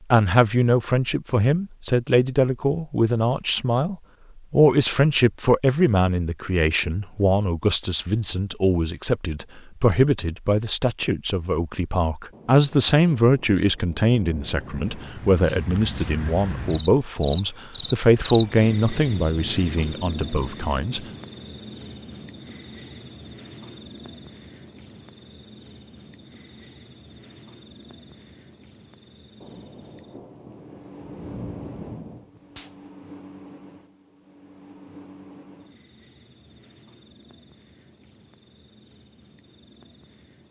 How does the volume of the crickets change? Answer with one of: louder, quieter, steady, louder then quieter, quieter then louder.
quieter.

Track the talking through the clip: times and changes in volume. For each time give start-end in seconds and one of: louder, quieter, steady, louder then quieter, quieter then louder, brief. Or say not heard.
0.1-21.0 steady.